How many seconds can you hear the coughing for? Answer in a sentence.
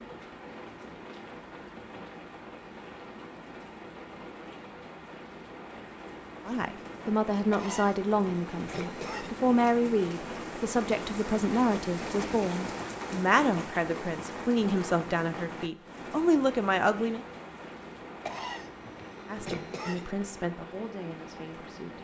You can hear the coughing for 4 seconds altogether.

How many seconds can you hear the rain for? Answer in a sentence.
The rain can be heard for 22 seconds in total.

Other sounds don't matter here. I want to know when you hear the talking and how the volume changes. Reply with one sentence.
The talking can be heard from 6.5 to 17.2 s, at a steady volume; and briefly from 19.2 to 21.9 s.